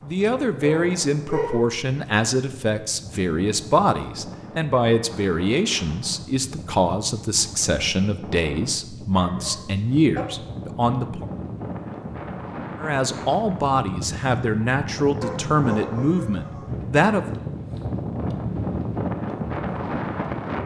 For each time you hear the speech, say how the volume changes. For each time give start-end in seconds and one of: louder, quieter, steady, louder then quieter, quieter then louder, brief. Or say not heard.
0.0-11.2 steady
12.8-17.4 steady.